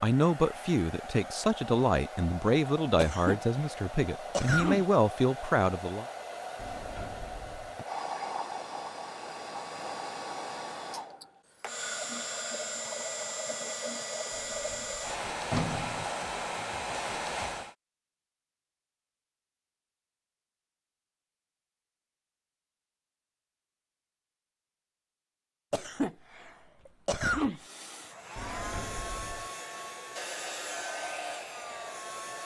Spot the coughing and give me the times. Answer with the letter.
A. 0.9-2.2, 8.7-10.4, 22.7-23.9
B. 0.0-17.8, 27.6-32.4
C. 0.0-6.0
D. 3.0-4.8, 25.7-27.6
D.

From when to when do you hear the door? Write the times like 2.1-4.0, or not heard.
6.5-7.8, 14.3-16.1, 28.4-29.5.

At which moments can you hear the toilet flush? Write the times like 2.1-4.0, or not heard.
not heard.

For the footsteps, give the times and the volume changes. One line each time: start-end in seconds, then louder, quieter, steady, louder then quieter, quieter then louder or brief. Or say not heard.
not heard.